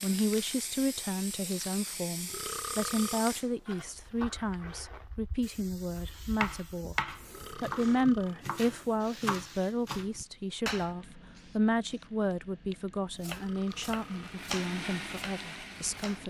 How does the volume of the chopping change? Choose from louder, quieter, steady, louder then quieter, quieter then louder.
quieter.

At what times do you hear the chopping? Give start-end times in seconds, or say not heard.
6.4-10.9, 13.2-16.2.